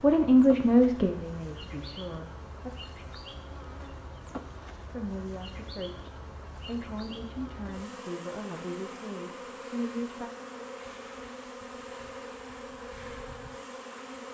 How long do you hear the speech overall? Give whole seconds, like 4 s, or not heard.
8 s.